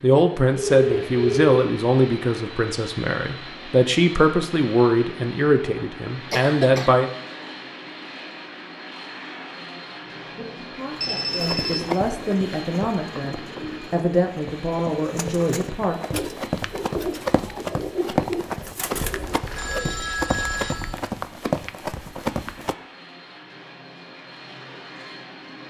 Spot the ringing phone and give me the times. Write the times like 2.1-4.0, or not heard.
0.6-1.6, 11.0-11.9, 18.9-20.9.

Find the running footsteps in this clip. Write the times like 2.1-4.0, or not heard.
11.3-22.8.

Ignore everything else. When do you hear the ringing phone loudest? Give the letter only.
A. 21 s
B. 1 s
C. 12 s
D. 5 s
B.